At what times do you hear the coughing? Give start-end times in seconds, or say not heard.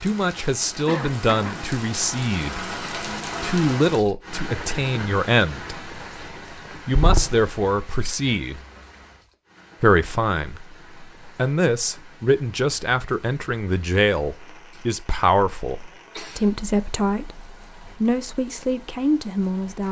0.8-1.7, 6.9-7.5, 14.6-15.0, 15.9-16.6.